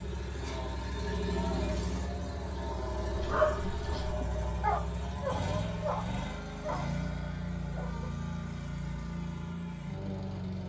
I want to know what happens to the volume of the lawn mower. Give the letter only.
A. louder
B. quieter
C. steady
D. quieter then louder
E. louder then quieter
C.